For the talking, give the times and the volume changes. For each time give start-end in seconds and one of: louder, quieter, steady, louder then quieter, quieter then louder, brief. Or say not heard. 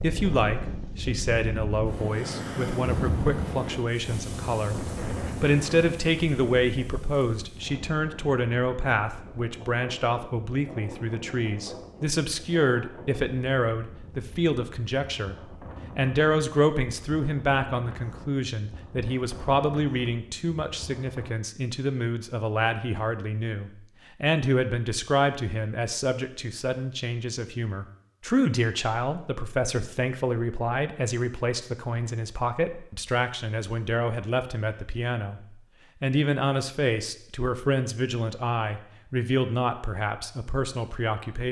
0.0-41.4 steady.